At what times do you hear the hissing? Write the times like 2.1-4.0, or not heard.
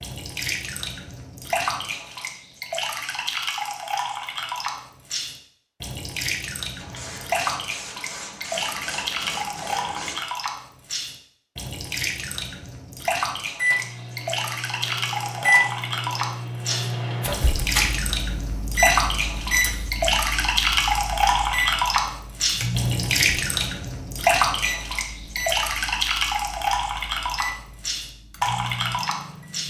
6.8-10.2.